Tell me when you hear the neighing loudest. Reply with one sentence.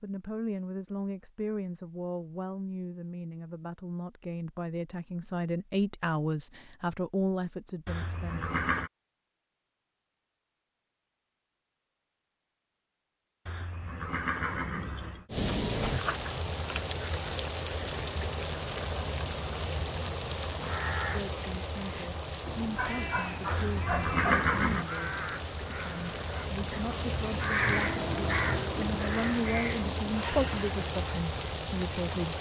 The volume of the neighing peaks at 24 seconds.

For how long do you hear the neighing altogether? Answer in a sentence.
You can hear the neighing for 4 seconds altogether.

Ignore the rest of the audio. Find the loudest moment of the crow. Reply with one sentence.
The loudest moment of the crow is at 28 seconds.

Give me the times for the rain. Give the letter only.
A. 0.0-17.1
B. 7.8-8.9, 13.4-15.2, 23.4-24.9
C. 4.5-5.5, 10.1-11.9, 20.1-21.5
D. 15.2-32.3
D.